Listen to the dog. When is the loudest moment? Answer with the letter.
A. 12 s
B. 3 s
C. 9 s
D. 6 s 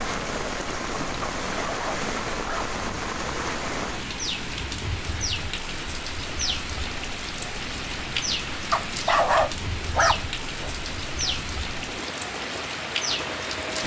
C.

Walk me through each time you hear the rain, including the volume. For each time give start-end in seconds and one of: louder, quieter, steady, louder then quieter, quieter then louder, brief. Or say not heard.
0.0-13.8 steady.